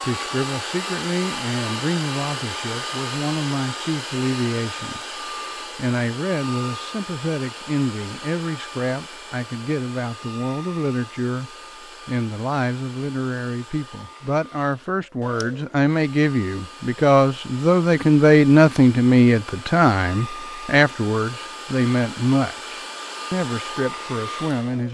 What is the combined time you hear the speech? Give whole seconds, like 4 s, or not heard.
24 s.